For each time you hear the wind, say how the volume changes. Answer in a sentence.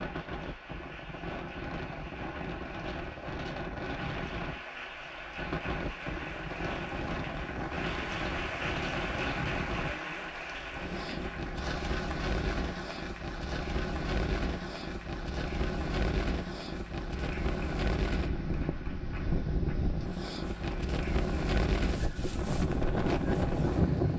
You can hear the wind from 0.0 to 24.1 s, getting louder.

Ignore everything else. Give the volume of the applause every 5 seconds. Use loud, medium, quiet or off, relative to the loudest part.
medium, loud, loud, medium, quiet.